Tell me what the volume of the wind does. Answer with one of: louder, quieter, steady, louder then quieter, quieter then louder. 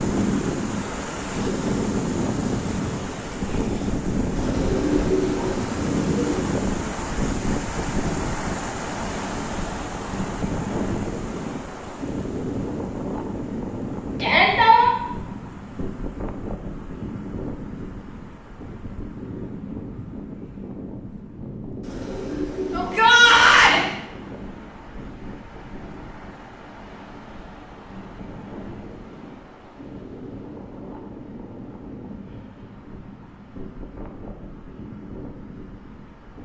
quieter.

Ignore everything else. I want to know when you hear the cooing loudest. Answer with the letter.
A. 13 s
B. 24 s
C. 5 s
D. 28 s
C.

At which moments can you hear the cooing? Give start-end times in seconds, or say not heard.
4.3-6.3, 21.8-23.9.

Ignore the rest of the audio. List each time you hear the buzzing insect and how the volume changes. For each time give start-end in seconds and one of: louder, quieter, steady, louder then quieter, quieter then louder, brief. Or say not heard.
not heard.